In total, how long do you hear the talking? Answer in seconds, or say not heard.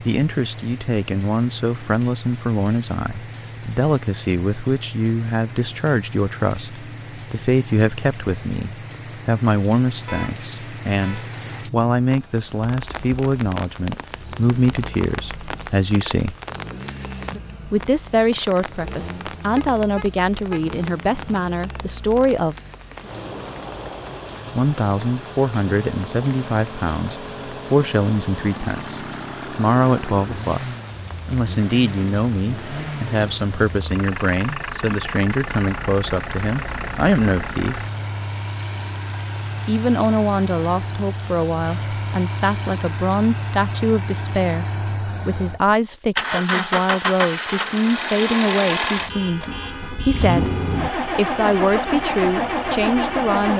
48 s.